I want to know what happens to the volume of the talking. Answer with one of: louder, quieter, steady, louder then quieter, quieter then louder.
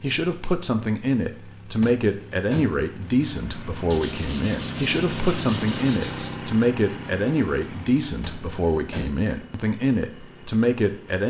steady.